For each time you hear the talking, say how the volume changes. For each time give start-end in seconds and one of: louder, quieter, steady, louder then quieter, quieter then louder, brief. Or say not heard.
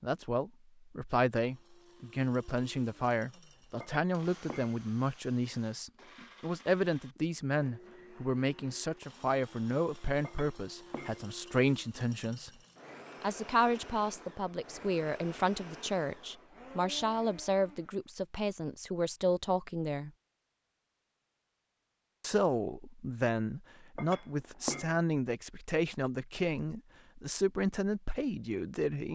0.0-12.5 steady
13.2-20.1 steady
22.2-29.1 steady.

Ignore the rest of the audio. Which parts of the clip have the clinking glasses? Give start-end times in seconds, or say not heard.
3.8-4.8, 10.2-11.2, 23.9-24.9.